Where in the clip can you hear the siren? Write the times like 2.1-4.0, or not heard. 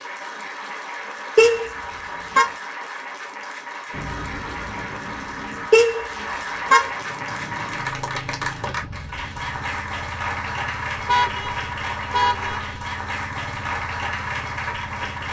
3.9-5.7.